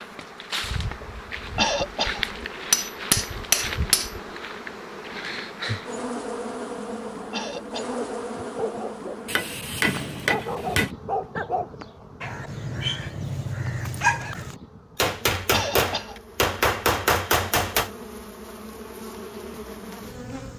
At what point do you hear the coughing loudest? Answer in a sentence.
The loudest moment of the coughing is at 2 seconds.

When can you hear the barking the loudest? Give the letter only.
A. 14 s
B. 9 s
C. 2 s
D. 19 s
A.